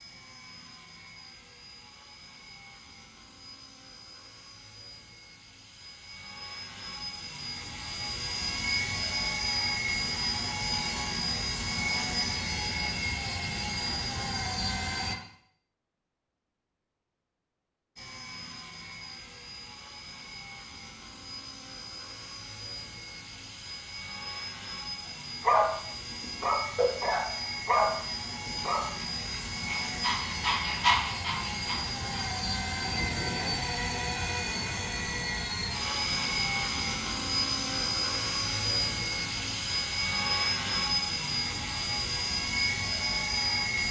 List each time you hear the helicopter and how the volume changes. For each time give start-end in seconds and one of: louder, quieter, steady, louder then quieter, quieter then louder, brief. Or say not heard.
0.0-15.2 louder
17.9-43.8 louder.